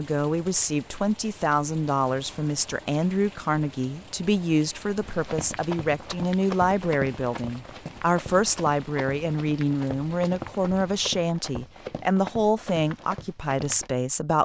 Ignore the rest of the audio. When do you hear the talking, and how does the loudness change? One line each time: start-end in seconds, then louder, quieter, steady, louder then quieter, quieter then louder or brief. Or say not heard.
0.0-14.4 steady.